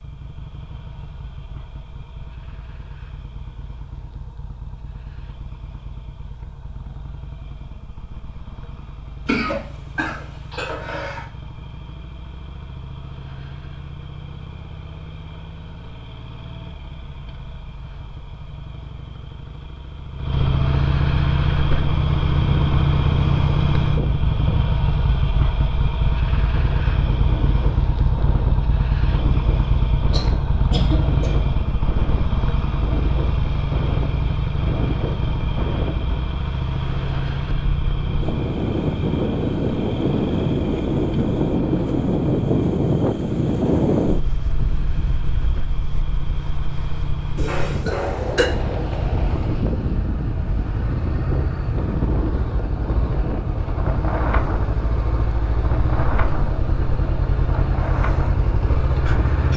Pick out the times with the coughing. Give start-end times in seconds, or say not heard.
9.2-11.2, 30.1-31.4, 47.4-48.5.